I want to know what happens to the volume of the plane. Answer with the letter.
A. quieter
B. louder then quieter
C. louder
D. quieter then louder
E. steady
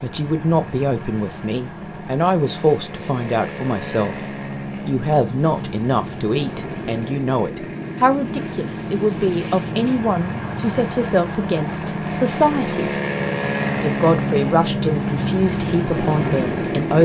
C.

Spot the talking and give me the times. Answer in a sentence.
The talking can be heard from 0.0 to 4.2 s, from 4.8 to 12.9 s and from 13.8 to 17.0 s.